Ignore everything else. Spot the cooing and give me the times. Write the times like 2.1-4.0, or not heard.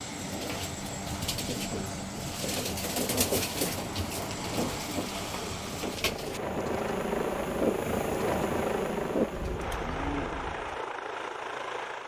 0.1-10.8.